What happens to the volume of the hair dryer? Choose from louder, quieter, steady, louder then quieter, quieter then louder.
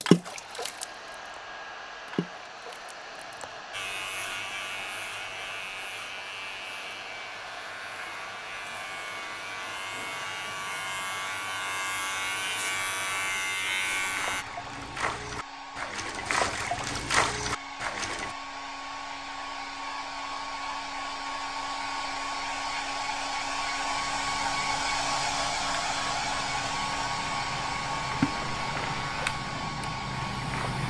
louder.